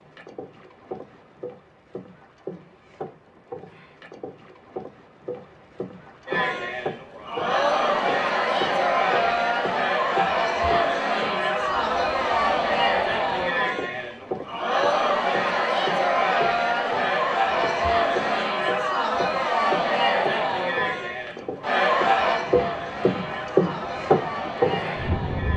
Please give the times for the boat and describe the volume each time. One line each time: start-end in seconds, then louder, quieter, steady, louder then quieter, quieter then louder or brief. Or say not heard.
0.0-25.5 louder.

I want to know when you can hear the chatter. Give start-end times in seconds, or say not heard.
6.2-25.5.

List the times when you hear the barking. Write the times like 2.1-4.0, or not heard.
not heard.